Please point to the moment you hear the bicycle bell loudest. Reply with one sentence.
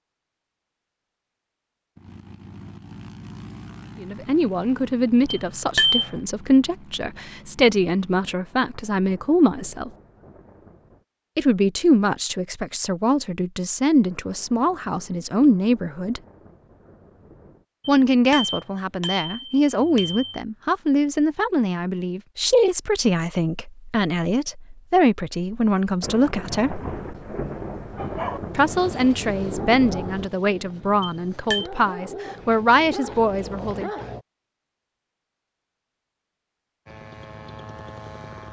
The volume of the bicycle bell peaks at 6 seconds.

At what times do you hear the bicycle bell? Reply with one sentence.
The bicycle bell can be heard from 5.3 to 6.1 s, from 17.9 to 20.4 s and from 31.0 to 31.6 s.